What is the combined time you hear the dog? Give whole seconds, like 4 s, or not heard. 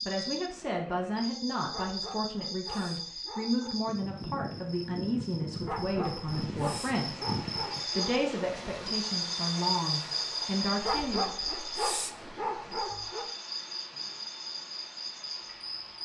7 s.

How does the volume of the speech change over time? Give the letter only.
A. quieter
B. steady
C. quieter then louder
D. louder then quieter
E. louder
B.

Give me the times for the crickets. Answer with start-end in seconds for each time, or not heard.
0.0-16.0.